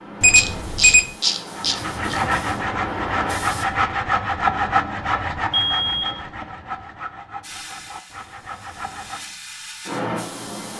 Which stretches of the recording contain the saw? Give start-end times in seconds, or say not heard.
1.6-9.3.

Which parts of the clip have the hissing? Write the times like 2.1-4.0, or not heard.
0.0-3.6, 7.4-10.7.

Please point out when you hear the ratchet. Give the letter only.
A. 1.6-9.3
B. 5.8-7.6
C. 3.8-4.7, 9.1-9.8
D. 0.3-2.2
D.